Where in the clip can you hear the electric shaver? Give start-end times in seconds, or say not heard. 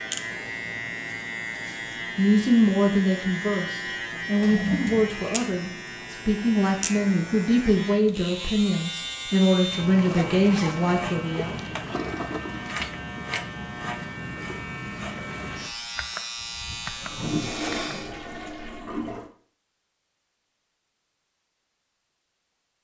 0.0-18.1.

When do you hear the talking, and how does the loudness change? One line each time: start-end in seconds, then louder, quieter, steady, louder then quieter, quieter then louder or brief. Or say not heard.
2.1-11.6 steady.